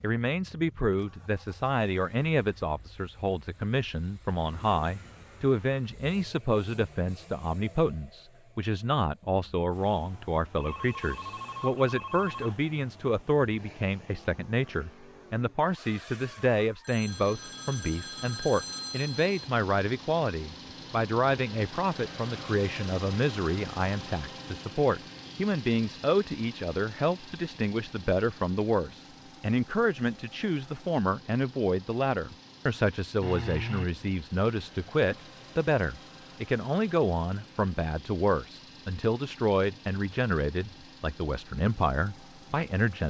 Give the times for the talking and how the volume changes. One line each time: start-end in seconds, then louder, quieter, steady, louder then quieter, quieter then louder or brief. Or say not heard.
0.0-43.0 steady.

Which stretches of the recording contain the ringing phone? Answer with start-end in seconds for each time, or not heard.
10.6-12.6, 16.8-19.5, 33.2-33.9.